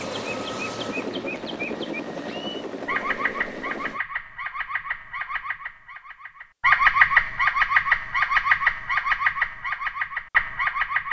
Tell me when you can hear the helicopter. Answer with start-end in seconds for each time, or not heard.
0.0-4.0.